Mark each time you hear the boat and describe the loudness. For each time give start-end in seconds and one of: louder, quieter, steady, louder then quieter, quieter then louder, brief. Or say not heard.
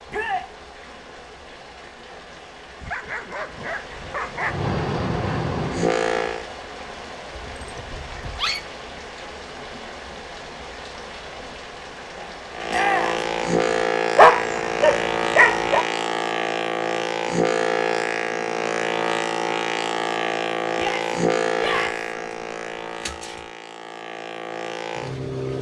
4.4-6.5 brief
12.5-25.5 quieter.